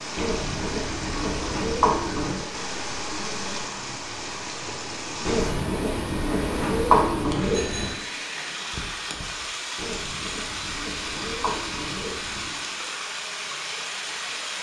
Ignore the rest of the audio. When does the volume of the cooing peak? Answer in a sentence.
The volume of the cooing peaks at 7 seconds.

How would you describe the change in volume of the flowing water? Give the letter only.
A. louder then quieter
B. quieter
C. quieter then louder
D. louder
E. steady
E.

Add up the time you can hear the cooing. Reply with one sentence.
You can hear the cooing for 8 seconds altogether.